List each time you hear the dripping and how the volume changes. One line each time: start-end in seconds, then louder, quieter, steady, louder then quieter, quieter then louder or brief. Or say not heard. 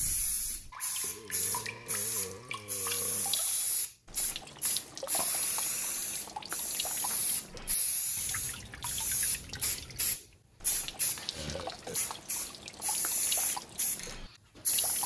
0.0-15.0 steady.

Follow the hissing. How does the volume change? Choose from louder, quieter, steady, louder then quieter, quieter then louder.
steady.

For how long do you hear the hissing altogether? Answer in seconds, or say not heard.
15 s.